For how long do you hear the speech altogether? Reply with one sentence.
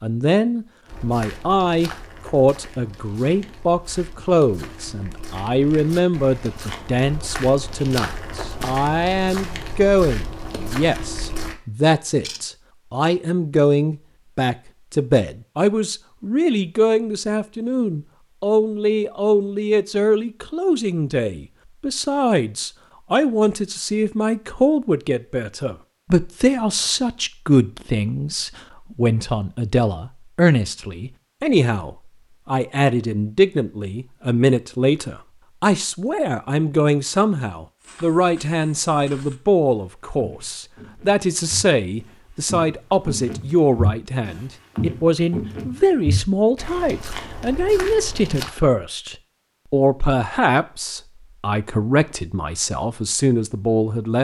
You can hear the speech for 54 seconds altogether.